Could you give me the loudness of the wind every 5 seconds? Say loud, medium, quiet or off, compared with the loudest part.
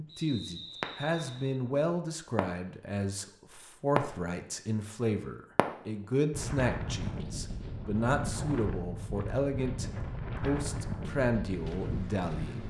off, loud, loud.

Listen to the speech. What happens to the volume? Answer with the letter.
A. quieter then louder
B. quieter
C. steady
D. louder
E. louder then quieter
C.